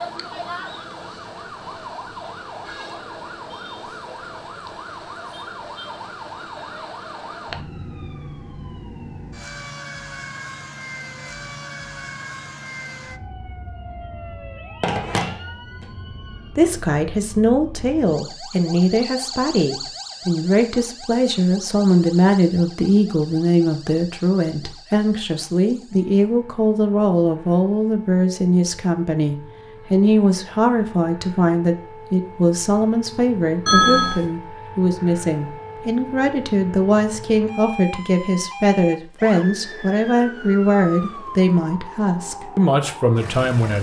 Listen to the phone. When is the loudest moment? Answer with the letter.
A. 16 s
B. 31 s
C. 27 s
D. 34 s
D.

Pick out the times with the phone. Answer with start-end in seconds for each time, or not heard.
14.8-15.3, 33.6-34.2.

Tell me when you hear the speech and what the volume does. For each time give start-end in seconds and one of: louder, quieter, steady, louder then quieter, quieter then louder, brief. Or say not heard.
16.6-43.7 steady.